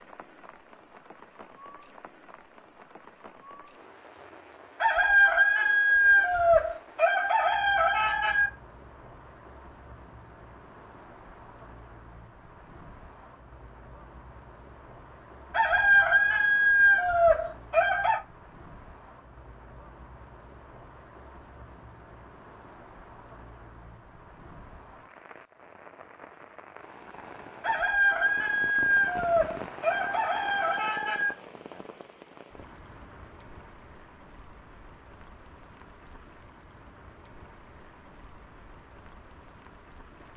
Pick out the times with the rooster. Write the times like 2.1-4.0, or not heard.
4.8-8.5, 15.5-18.2, 27.6-31.4.